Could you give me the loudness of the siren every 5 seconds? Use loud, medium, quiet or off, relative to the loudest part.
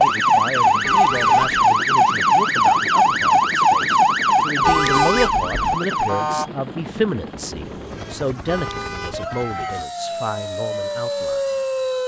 loud, medium, medium.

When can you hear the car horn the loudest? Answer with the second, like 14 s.
5 s.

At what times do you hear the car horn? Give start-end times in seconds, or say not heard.
0.8-1.6, 4.6-5.8, 8.4-9.2.